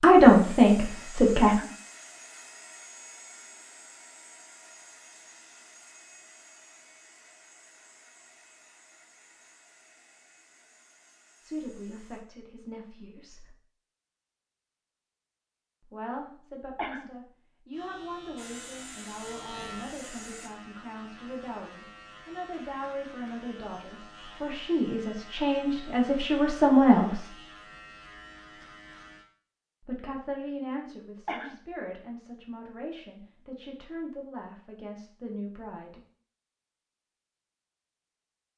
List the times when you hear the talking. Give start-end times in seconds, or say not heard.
0.0-1.6, 11.4-13.6, 15.8-27.3, 29.9-36.0.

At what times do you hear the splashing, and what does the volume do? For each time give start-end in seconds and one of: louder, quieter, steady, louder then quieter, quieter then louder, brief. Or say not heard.
not heard.